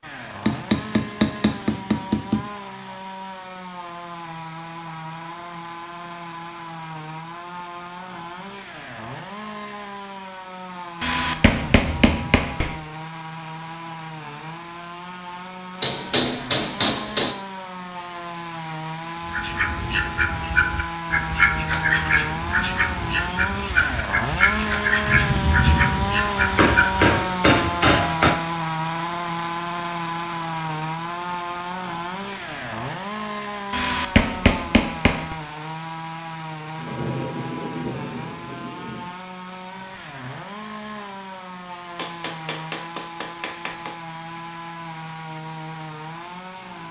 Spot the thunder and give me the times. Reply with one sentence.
The thunder can be heard from 11.5 to 12.6 s, from 25.0 to 26.1 s and from 36.8 to 39.1 s.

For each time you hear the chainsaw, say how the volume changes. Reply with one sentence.
You can hear the chainsaw from 0.0 to 46.8 s, getting louder then quieter.